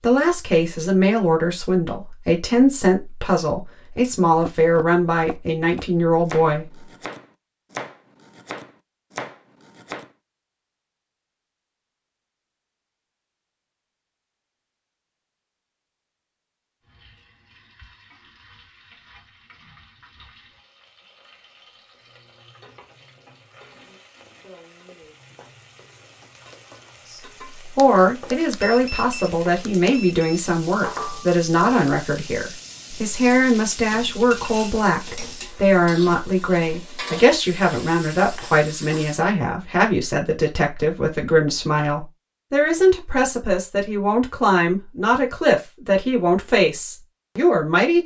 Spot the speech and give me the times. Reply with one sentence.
The speech can be heard from 0.0 to 6.7 s and from 27.8 to 48.0 s.